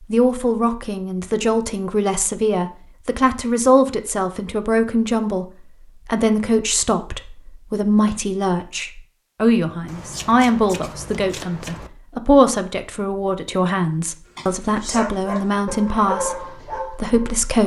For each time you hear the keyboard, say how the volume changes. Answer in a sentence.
You can't hear the keyboard here.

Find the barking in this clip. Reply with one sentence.
You can hear the barking from 14.3 to 17.4 s.